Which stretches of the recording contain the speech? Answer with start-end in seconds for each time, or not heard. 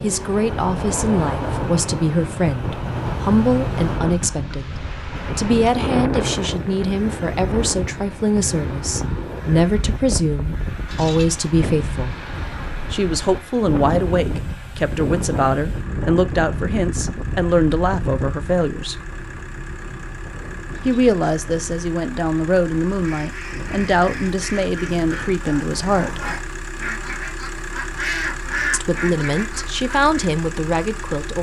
0.0-12.2, 12.9-19.0, 20.9-26.3, 28.7-31.3.